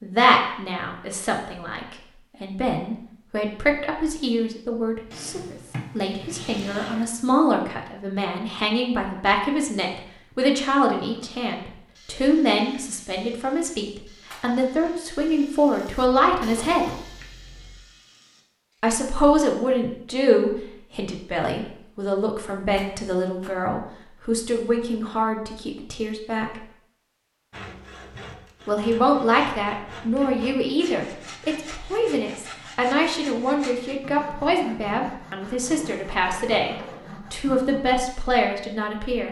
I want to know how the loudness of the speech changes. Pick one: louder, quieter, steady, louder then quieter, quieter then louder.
steady.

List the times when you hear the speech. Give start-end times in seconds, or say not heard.
0.0-16.9, 18.8-26.6, 28.6-39.2.